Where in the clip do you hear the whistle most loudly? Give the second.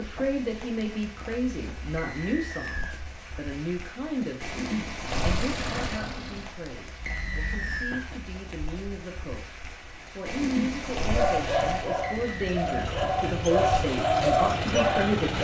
8 s.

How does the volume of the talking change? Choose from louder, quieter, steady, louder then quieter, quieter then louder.
quieter then louder.